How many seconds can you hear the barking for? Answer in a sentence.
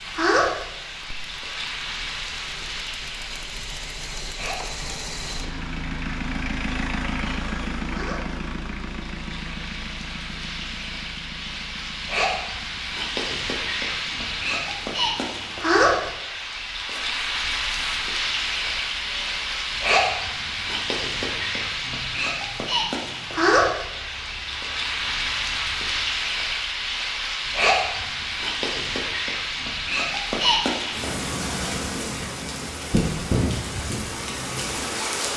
You can't hear the barking here.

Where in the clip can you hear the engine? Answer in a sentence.
The engine can be heard from 0.0 to 26.3 s.